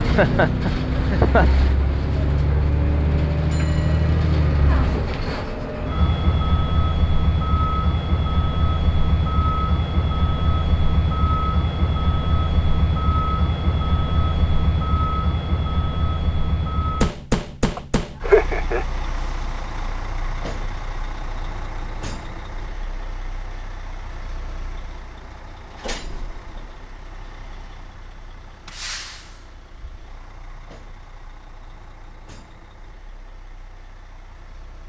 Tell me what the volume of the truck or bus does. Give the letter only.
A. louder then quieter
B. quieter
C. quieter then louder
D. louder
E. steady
B.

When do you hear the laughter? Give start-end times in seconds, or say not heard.
0.1-1.6, 17.8-18.9.